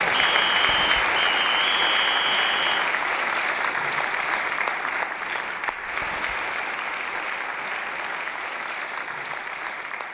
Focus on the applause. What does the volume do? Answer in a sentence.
The volume of the applause goes down.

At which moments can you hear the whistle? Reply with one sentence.
The whistle can be heard from 0.1 to 2.8 s.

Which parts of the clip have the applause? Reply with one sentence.
You can hear the applause from 0.0 to 10.0 s.